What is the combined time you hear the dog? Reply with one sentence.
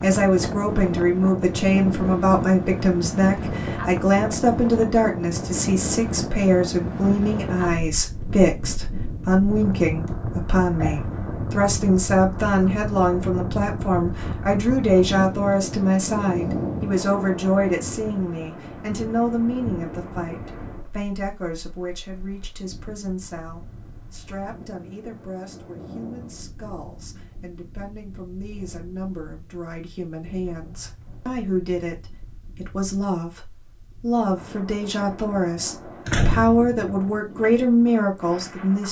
The dog can't be heard in this clip.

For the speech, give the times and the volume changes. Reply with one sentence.
The speech can be heard from 0.0 to 38.8 s, getting quieter then louder.